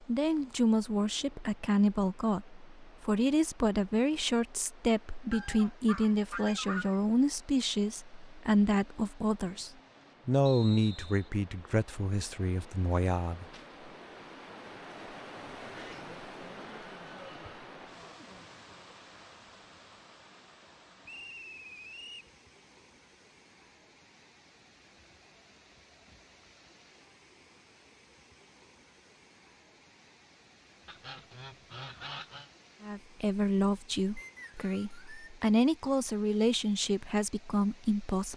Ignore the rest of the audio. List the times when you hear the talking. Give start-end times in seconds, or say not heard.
0.1-13.4, 32.8-38.3.